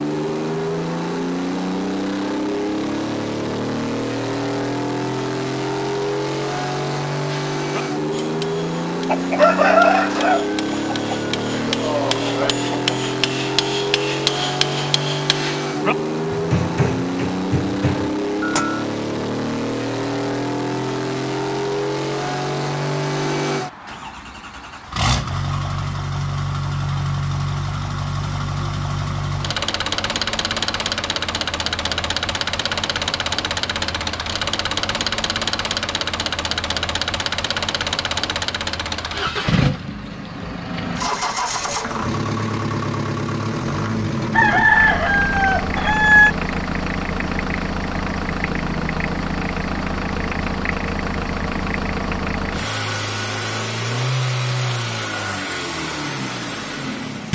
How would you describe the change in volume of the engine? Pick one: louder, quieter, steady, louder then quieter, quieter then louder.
steady.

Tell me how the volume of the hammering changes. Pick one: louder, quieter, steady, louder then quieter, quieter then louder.
louder.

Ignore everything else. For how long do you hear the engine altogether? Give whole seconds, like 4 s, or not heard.
57 s.